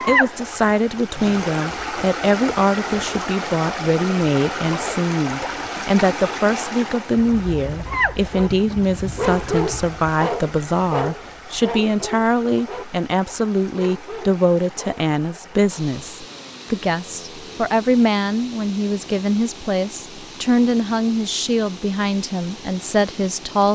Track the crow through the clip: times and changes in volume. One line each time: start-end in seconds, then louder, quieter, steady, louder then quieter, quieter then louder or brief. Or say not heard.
not heard.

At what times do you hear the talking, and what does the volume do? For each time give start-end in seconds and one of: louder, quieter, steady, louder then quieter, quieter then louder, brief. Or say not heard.
0.1-23.6 steady.